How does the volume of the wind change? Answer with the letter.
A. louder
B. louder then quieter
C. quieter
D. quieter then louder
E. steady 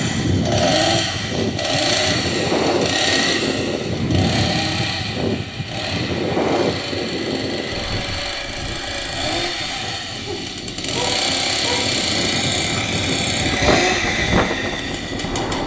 D.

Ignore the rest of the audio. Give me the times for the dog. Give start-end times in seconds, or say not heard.
10.2-11.9.